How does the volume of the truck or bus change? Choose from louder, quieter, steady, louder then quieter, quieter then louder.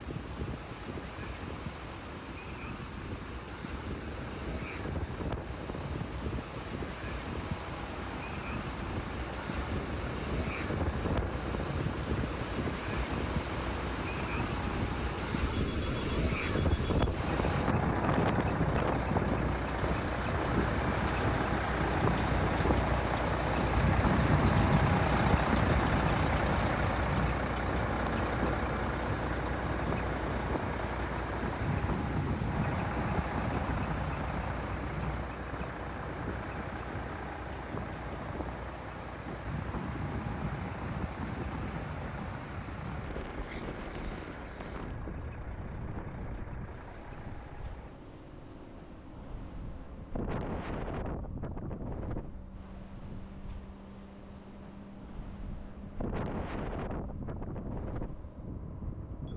louder then quieter.